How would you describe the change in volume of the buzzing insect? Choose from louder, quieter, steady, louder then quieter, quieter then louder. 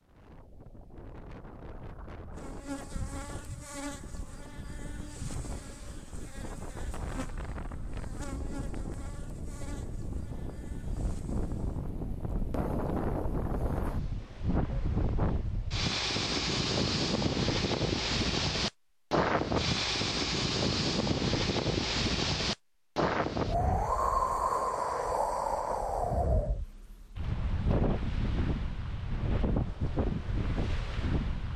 quieter.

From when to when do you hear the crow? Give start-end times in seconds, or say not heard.
not heard.